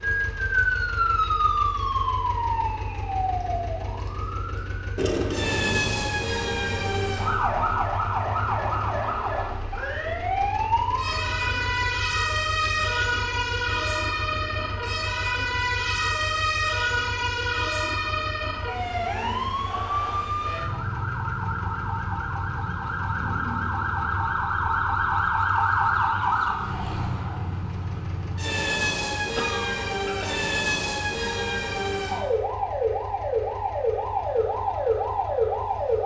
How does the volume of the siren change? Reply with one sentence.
The loudness of the siren stays about the same.